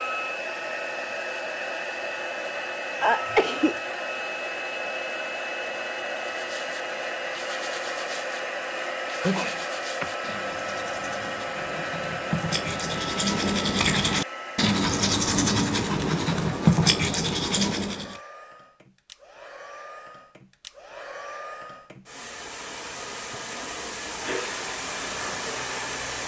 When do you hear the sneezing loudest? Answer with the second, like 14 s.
3 s.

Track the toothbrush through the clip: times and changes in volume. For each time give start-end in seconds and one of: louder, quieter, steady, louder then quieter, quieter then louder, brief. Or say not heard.
6.3-18.2 louder.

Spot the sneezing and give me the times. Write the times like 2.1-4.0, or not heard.
3.0-3.8, 9.2-10.1, 23.3-24.7.